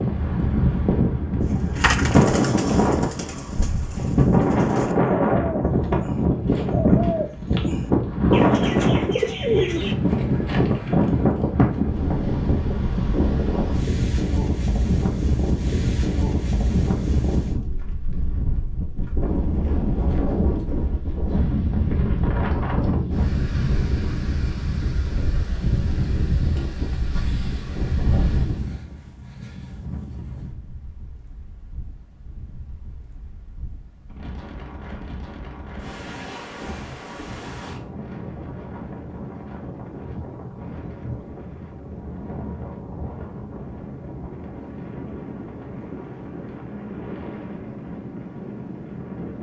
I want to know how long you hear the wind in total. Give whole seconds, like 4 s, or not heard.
49 s.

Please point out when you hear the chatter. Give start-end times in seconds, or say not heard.
not heard.